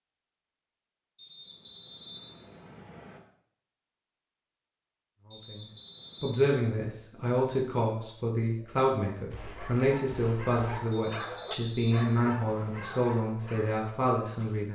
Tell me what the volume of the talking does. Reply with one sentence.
The loudness of the talking stays about the same.